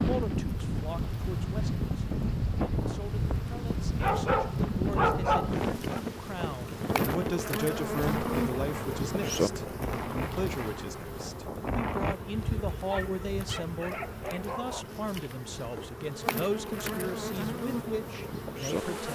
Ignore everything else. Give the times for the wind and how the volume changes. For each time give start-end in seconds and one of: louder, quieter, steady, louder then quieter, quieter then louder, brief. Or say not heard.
0.0-12.2 quieter.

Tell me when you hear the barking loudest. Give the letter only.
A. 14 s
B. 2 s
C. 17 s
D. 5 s
D.